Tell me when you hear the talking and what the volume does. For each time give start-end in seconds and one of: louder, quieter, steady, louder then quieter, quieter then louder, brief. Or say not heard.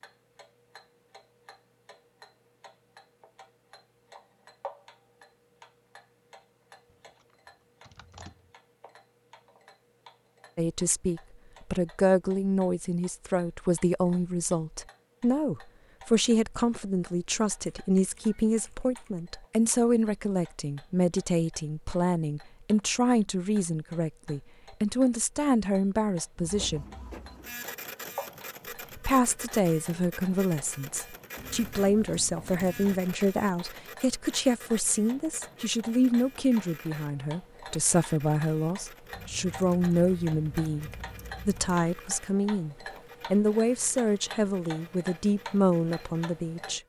10.6-26.9 steady
28.9-46.8 steady.